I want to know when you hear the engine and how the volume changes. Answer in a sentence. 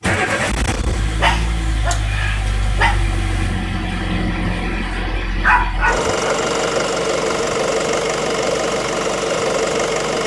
The engine can be heard from 0.0 to 10.2 s, getting louder.